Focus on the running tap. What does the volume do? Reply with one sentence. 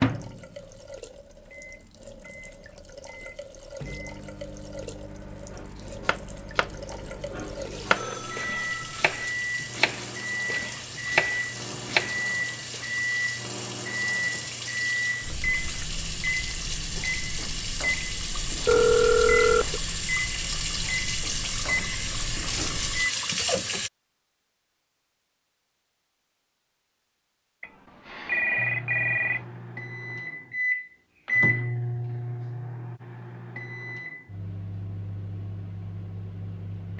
The volume of the running tap goes up.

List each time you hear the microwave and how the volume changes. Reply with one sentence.
You can hear the microwave from 0.0 to 23.1 s, getting louder; and from 28.6 to 36.9 s, getting louder then quieter.